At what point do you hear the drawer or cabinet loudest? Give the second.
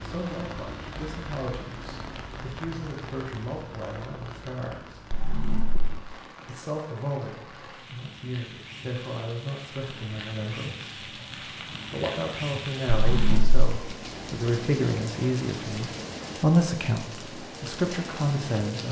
13 s.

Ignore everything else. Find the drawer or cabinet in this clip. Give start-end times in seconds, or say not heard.
5.1-6.0, 12.8-13.7.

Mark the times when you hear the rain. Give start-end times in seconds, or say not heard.
0.0-18.8.